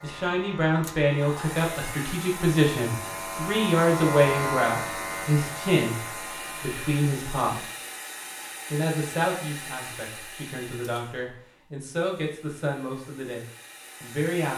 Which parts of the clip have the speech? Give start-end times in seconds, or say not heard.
0.0-7.7, 8.7-14.5.